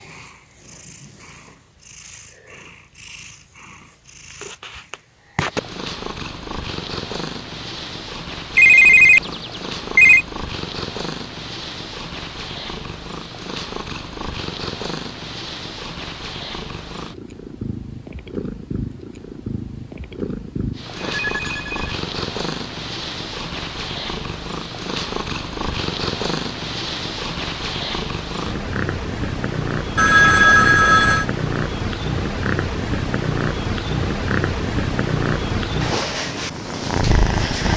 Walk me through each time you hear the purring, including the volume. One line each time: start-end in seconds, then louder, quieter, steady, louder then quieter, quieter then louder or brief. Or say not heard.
0.0-37.7 louder.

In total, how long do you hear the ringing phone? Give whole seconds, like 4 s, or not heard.
4 s.